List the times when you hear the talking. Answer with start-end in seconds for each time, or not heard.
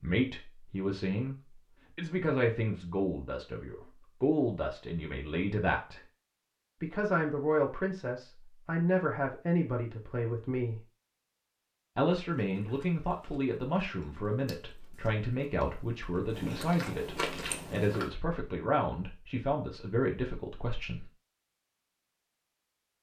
0.0-1.4, 1.9-6.0, 6.8-10.8, 11.9-21.1.